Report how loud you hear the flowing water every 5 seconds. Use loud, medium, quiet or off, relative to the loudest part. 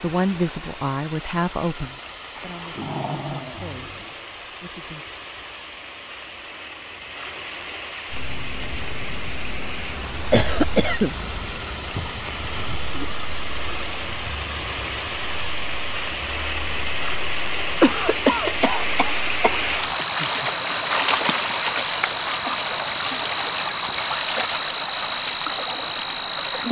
quiet, medium, medium, loud, loud, loud.